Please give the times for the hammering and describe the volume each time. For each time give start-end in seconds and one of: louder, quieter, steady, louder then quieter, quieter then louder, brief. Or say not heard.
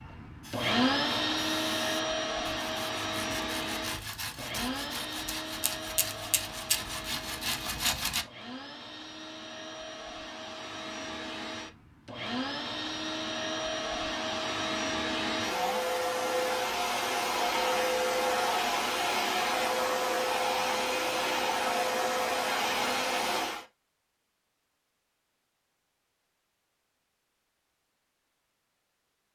not heard.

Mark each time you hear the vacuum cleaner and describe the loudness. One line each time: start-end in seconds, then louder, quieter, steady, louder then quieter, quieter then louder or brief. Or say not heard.
0.0-23.6 quieter then louder.